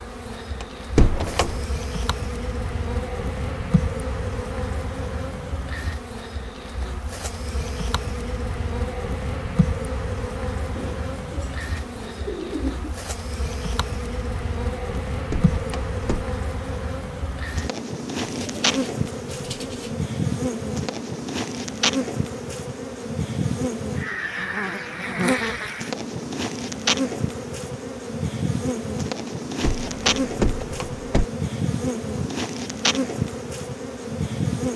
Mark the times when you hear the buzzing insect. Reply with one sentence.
The buzzing insect can be heard from 0.0 to 34.7 s.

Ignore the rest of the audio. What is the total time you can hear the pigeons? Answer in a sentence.
You can hear the pigeons for 4 seconds altogether.